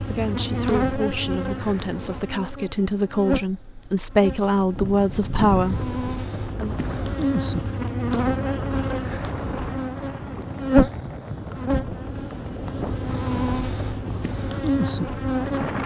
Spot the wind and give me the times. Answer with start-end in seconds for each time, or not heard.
4.8-15.8.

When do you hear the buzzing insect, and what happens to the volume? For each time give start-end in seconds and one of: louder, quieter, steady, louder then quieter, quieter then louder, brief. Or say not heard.
0.0-15.8 quieter then louder.